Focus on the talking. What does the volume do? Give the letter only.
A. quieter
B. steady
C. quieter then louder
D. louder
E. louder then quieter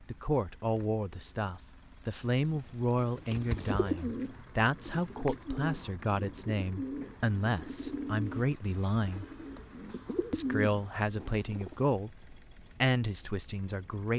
B.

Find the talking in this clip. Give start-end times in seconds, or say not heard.
0.1-9.2, 10.3-14.1.